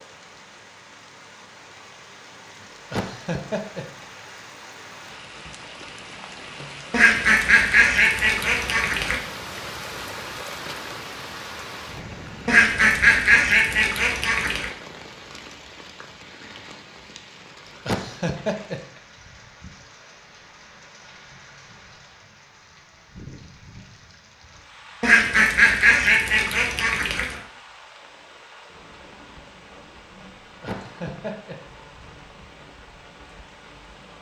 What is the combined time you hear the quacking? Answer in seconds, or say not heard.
7 s.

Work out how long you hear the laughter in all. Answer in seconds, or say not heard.
3 s.